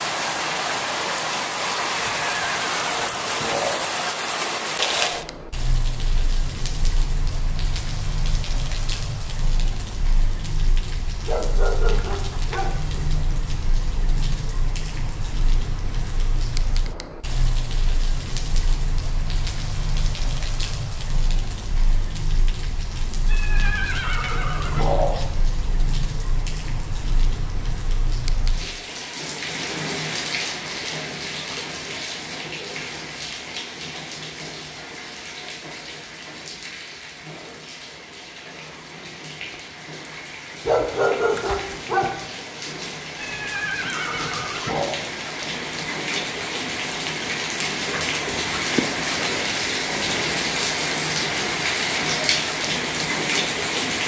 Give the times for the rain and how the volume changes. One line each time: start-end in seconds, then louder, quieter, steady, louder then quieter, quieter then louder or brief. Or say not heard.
0.0-54.0 quieter then louder.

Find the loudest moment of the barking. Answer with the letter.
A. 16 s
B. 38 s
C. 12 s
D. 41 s
D.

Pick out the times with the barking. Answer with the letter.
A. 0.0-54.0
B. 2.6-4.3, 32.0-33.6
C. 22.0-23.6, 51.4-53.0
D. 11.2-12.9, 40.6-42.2
D.